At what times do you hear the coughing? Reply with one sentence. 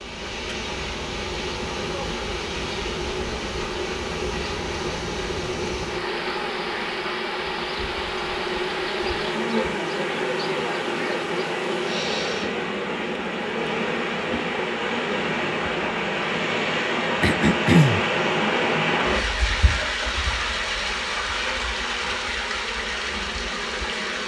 You can hear the coughing from 17.2 to 18.1 s.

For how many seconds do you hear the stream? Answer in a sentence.
The stream can be heard for 24 seconds in total.